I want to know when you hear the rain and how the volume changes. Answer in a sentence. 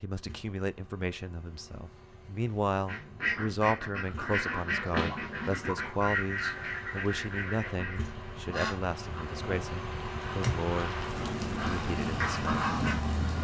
You can hear the rain from 6.3 to 13.3 s, getting louder.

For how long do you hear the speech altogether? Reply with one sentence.
The speech can be heard for 12 seconds in total.